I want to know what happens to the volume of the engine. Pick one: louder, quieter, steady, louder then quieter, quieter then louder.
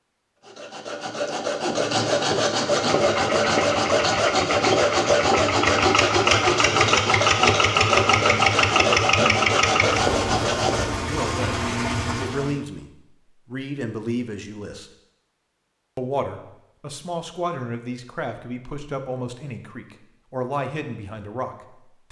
louder then quieter.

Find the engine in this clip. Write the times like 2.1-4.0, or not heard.
2.8-12.6.